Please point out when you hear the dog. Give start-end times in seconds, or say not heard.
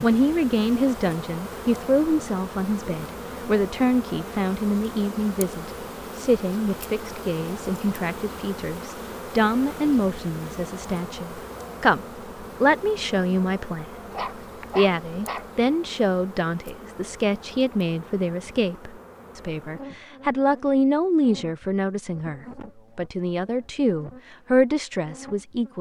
14.1-15.4.